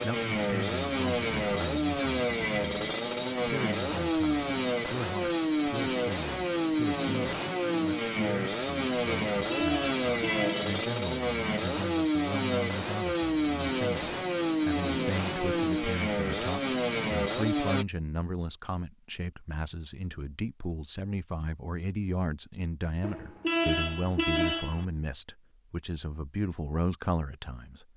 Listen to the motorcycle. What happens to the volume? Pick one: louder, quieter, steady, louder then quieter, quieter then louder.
steady.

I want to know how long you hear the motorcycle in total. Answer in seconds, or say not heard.
18 s.